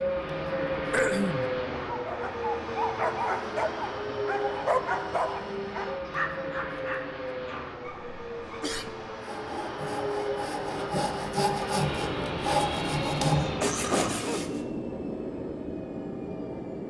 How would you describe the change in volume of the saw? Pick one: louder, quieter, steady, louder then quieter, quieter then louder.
louder.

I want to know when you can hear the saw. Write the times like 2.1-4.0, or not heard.
9.2-14.6.